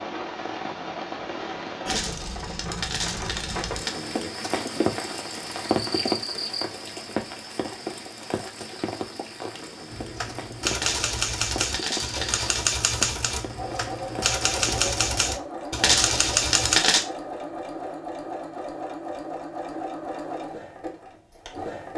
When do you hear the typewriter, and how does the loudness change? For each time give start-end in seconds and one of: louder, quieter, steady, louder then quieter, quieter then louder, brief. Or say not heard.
9.9-16.8 steady.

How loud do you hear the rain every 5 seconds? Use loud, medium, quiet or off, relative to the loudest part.
loud, loud, medium, off, off.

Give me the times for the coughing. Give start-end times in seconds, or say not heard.
not heard.